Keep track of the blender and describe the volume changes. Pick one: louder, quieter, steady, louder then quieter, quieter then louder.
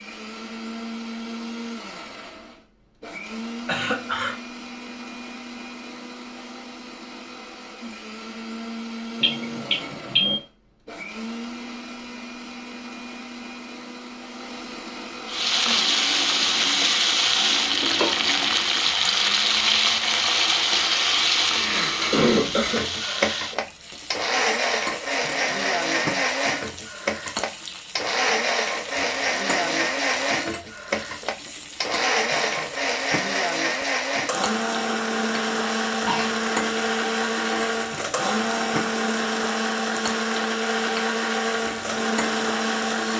louder.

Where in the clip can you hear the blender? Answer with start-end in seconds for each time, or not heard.
0.0-43.1.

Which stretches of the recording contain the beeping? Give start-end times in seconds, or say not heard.
9.2-10.4.